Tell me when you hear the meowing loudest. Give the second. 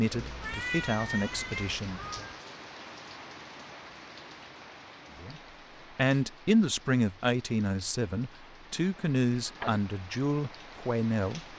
1 s.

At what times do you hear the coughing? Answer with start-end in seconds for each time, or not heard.
not heard.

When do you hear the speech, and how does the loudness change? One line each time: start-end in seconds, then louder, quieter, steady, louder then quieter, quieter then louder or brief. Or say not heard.
0.0-2.2 brief
5.2-11.5 quieter.